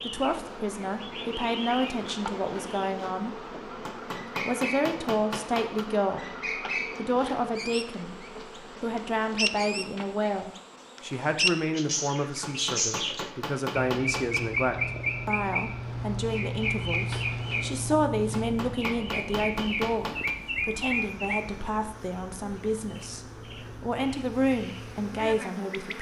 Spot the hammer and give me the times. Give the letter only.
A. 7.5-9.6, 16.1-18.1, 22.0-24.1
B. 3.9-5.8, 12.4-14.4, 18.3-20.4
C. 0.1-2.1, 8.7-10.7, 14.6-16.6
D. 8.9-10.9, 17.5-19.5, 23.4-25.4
B.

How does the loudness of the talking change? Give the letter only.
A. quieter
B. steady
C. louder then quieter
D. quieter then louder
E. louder
B.